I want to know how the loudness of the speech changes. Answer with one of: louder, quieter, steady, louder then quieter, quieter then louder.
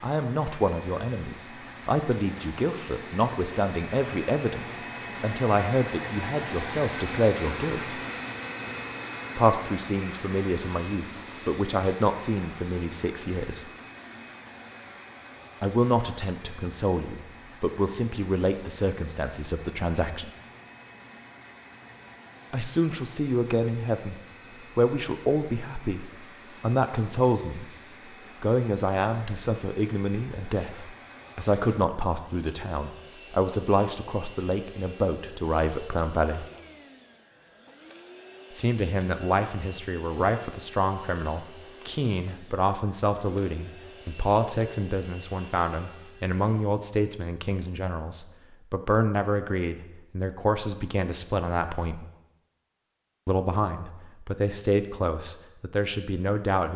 steady.